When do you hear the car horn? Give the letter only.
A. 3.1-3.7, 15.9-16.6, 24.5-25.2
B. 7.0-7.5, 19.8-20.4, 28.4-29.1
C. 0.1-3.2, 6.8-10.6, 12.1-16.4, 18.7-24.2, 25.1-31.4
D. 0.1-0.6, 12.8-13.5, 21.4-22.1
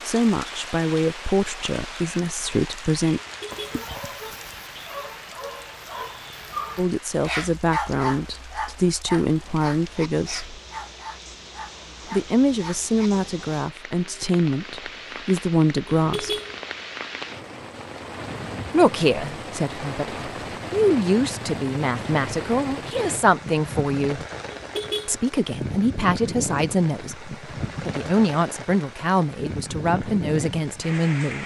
A.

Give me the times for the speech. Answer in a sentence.
You can hear the speech from 0.1 to 3.2 s, from 6.8 to 10.6 s, from 12.1 to 16.4 s, from 18.7 to 24.2 s and from 25.1 to 31.4 s.